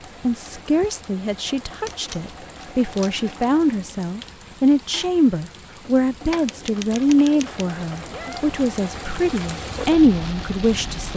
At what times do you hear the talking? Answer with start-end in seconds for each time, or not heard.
0.2-11.1.